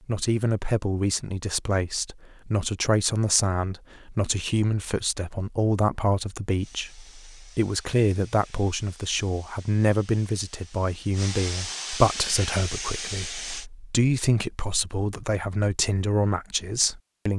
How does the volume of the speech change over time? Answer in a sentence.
The volume of the speech stays about the same.